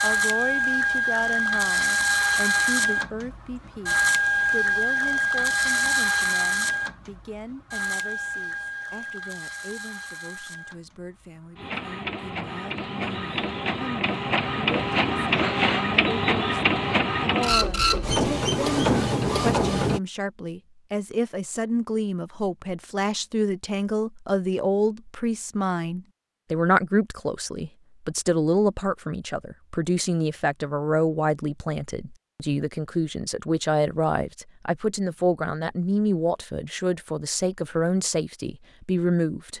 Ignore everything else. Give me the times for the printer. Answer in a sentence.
You can hear the printer from 0.0 to 20.0 s.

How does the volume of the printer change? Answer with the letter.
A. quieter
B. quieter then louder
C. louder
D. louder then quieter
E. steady
B.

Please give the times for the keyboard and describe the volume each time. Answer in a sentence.
The keyboard can't be heard in this clip.